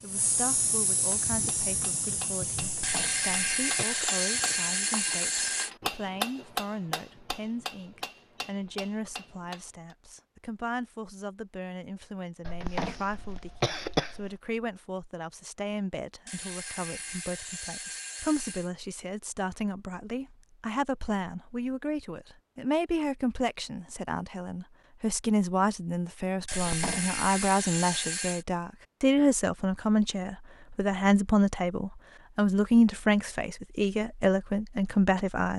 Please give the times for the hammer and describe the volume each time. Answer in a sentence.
You can hear the hammer from 1.1 to 9.9 s, getting louder then quieter.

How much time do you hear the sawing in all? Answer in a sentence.
The sawing can be heard for 7 seconds in total.